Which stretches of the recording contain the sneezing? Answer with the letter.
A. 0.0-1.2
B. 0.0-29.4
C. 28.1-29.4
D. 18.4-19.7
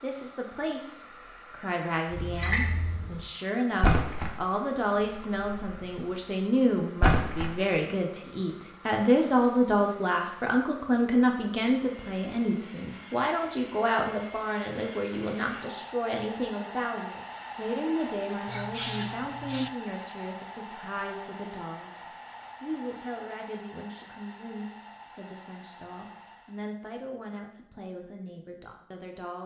D.